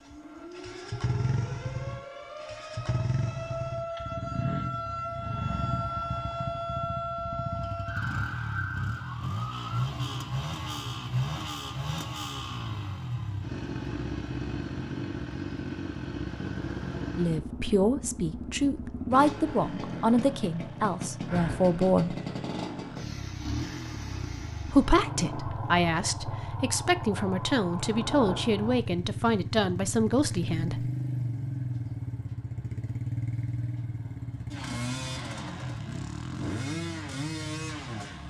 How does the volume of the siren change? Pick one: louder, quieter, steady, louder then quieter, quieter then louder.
louder then quieter.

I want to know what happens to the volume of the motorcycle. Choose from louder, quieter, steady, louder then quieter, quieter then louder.
steady.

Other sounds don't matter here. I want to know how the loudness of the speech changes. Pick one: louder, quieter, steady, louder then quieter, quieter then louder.
steady.